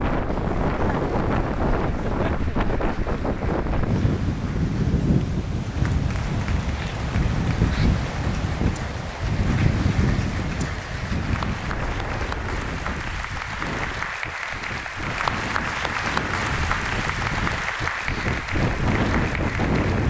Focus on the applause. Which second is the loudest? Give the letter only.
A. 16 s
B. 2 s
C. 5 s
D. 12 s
A.